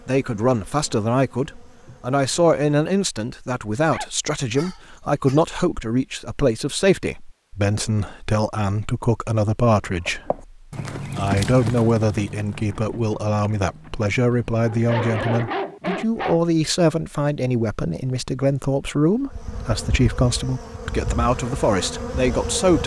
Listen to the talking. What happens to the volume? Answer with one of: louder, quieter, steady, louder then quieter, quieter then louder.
steady.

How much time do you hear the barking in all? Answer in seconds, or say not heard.
3 s.